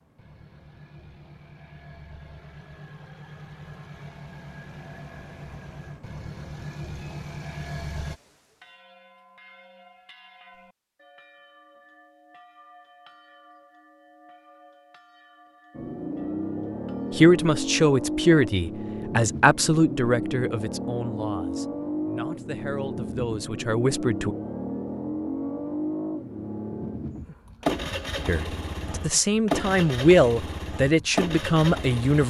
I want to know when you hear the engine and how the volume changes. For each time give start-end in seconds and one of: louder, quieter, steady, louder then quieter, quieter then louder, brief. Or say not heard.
0.0-8.2 louder
15.7-32.2 steady.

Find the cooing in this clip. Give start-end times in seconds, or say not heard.
not heard.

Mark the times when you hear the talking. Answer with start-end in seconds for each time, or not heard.
17.1-24.4, 28.2-32.2.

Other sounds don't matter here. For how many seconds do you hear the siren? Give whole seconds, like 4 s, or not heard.
not heard.